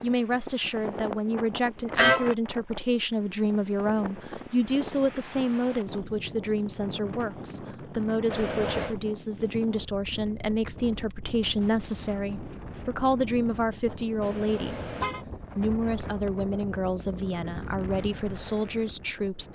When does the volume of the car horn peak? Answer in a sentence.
The loudest moment of the car horn is at 2 seconds.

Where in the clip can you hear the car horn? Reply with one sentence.
The car horn can be heard from 1.9 to 2.4 s, from 8.3 to 8.9 s and from 14.2 to 15.2 s.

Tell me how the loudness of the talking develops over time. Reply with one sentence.
The volume of the talking stays about the same.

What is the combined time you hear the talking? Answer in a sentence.
You can hear the talking for 19 seconds altogether.